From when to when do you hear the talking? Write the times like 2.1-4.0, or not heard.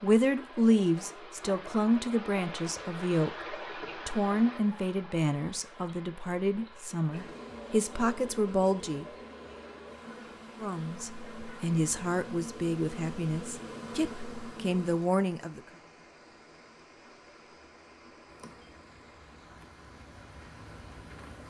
0.0-9.1, 10.6-15.6.